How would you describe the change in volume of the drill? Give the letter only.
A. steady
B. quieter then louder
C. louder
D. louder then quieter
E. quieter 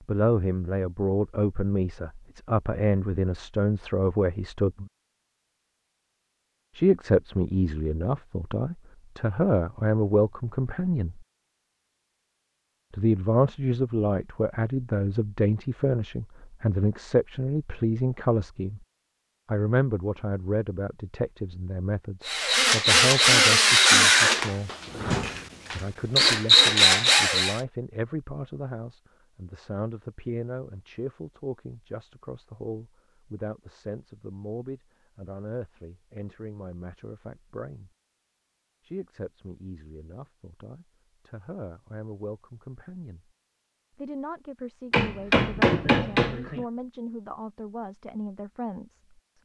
B.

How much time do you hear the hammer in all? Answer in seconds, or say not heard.
2 s.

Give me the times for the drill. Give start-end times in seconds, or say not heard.
22.2-27.6.